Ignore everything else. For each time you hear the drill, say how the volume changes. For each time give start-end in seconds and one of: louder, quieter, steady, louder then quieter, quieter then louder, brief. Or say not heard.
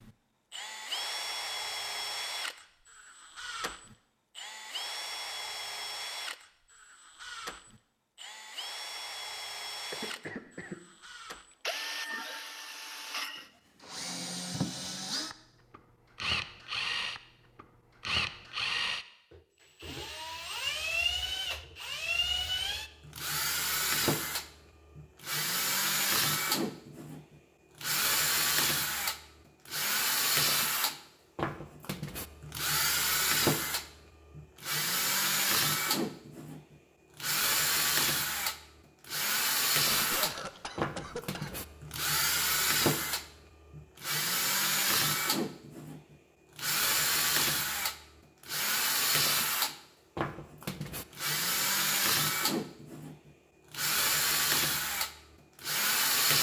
0.0-56.3 louder.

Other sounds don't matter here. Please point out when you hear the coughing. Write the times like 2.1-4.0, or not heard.
9.9-10.8, 39.9-41.6.